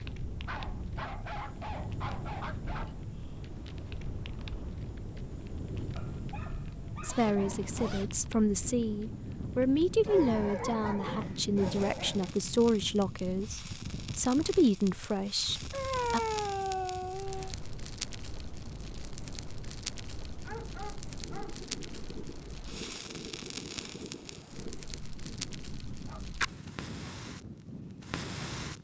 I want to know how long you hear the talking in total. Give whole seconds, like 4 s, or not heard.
9 s.